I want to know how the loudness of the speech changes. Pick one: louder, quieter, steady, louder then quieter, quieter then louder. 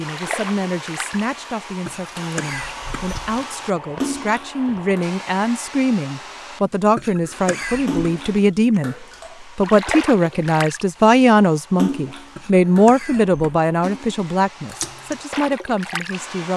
louder then quieter.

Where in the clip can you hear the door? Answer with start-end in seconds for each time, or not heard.
not heard.